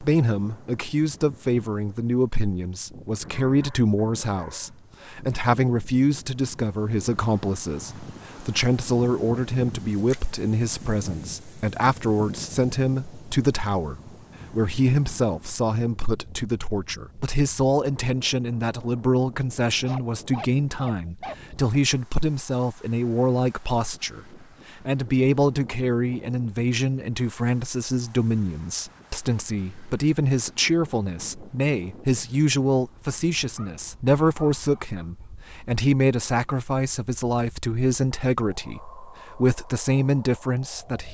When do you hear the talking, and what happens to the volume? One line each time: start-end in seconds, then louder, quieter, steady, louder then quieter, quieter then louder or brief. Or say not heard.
0.0-24.2 steady
24.9-41.0 steady.